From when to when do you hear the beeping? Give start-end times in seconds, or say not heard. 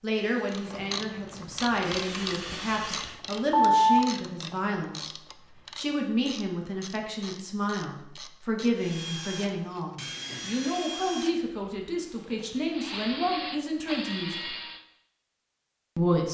3.3-4.0.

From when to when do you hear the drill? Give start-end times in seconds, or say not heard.
0.1-3.2, 8.8-14.8.